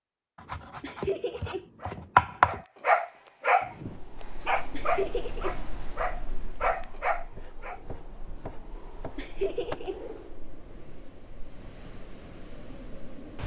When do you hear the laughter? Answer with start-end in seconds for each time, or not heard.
0.8-1.6, 4.7-5.5, 9.2-10.0.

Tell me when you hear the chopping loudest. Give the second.
2 s.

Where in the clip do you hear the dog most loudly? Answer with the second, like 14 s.
3 s.